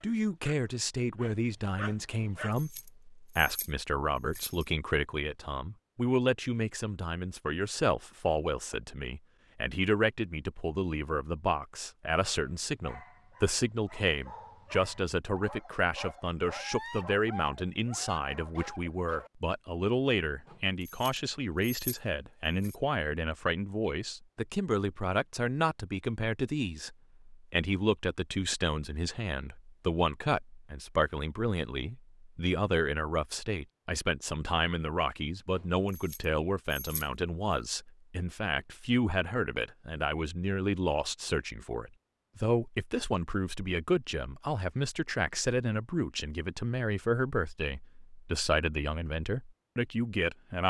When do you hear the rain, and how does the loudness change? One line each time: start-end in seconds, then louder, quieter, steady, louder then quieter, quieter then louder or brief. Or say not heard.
not heard.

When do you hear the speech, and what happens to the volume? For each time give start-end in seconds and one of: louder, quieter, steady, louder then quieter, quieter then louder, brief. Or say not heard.
0.0-50.6 steady.